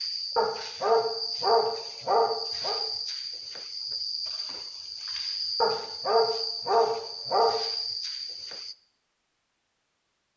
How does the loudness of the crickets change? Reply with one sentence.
The volume of the crickets stays about the same.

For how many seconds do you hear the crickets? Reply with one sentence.
The crickets can be heard for 9 seconds in total.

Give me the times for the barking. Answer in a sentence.
The barking can be heard from 0.3 to 2.8 s and from 5.6 to 7.6 s.